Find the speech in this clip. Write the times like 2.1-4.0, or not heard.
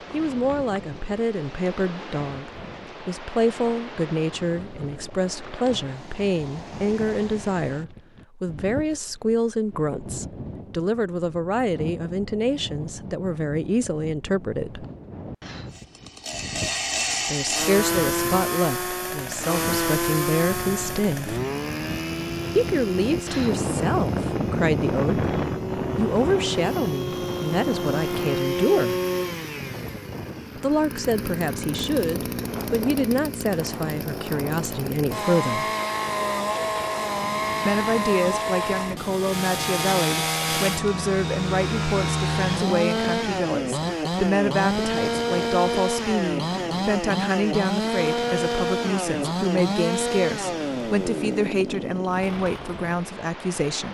0.1-14.8, 17.2-21.4, 22.6-29.0, 30.6-35.6, 37.6-53.8.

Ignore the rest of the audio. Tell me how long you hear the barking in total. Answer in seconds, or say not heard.
not heard.